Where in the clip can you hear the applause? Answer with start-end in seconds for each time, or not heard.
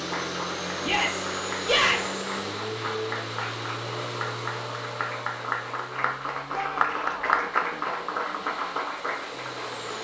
0.0-9.9.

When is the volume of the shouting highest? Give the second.
2 s.